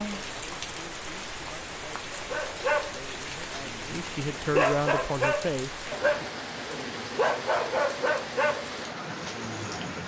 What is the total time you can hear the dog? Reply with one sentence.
The dog can be heard for 8 seconds in total.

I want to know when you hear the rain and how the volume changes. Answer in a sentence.
You can hear the rain from 0.0 to 10.0 s, at a steady volume.